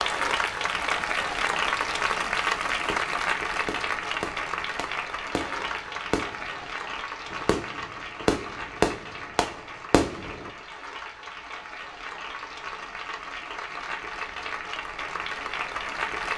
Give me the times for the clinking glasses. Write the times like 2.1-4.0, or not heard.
not heard.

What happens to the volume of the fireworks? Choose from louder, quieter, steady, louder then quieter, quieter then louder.
louder.